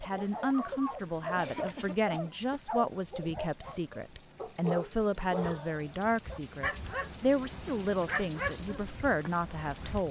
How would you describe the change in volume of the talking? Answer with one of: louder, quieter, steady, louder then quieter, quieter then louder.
steady.